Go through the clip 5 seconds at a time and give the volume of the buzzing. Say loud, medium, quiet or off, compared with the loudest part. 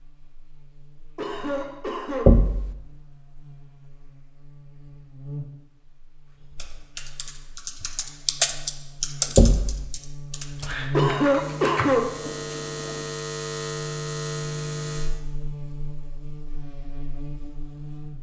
quiet, quiet, loud, medium.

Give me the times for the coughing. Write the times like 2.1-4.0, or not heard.
1.1-2.4, 10.9-12.2.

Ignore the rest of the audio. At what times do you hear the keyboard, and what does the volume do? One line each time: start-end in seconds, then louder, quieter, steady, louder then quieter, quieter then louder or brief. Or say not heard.
6.5-13.1 louder then quieter.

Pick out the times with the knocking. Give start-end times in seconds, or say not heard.
2.2-2.8, 9.3-9.8.